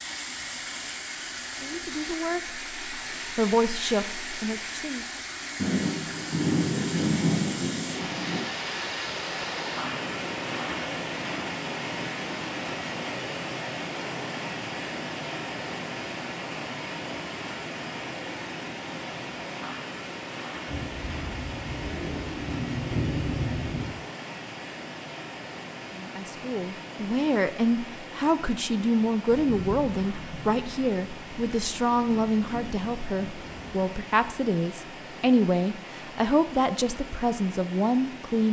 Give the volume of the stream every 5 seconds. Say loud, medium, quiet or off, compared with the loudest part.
loud, loud, loud, loud, medium, medium, medium, medium.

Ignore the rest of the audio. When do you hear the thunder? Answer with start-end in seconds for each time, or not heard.
5.5-8.4, 20.6-23.9, 29.2-34.0.